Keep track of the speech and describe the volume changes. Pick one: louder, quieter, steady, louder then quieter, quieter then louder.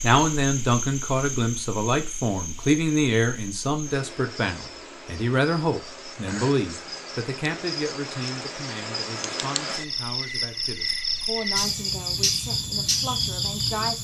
quieter.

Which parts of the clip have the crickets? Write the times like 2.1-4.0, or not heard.
0.0-13.9.